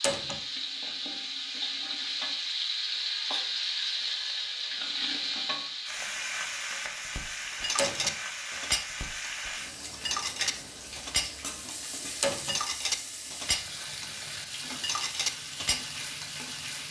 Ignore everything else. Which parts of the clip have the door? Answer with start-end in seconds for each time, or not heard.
0.0-0.4, 7.8-8.2, 12.2-12.6.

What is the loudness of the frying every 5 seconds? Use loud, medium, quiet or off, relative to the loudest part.
loud, loud, medium, medium.